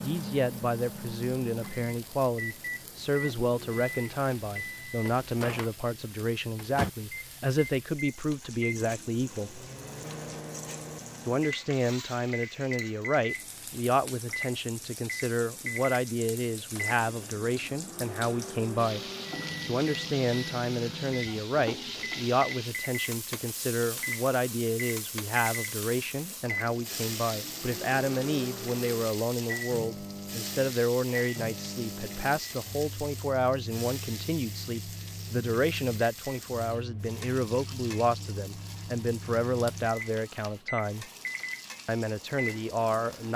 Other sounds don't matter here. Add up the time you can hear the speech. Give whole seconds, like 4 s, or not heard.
40 s.